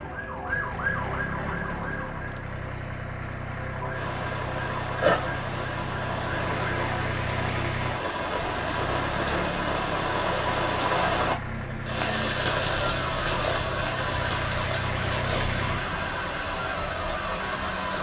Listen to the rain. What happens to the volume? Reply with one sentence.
The loudness of the rain goes up, then down.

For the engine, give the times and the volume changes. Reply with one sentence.
The engine can be heard from 0.0 to 17.9 s, at a steady volume.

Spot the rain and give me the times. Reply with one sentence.
You can hear the rain from 3.9 to 17.9 s.